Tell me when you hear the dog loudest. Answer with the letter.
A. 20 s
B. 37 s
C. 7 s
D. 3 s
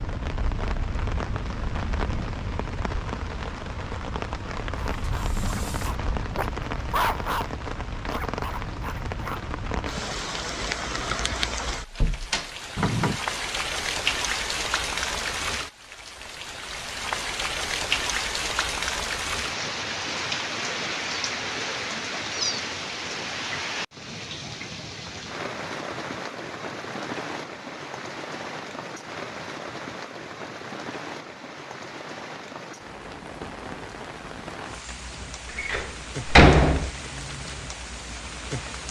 C.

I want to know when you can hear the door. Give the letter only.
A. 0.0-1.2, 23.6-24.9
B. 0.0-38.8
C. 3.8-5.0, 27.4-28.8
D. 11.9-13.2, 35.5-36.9
D.